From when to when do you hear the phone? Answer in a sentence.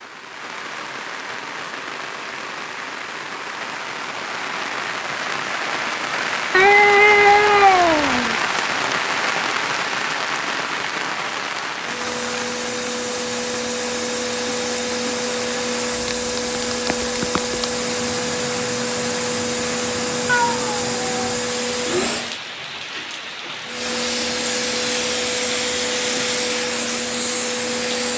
The phone can't be heard in this clip.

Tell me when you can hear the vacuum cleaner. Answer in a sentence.
The vacuum cleaner can be heard from 11.8 to 22.4 s and from 23.6 to 28.1 s.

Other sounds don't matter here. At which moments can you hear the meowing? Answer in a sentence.
You can hear the meowing from 6.5 to 8.3 s and from 20.2 to 21.4 s.